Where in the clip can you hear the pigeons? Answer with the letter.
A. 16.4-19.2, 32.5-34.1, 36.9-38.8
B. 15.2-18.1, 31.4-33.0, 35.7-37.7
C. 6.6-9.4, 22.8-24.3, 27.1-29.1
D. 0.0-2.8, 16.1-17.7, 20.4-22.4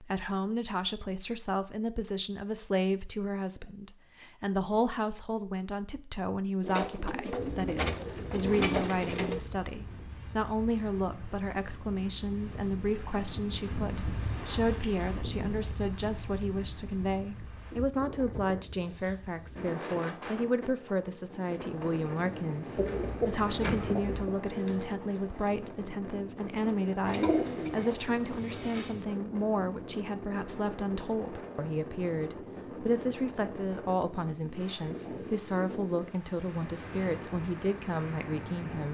C.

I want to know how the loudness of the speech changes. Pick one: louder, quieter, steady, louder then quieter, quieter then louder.
steady.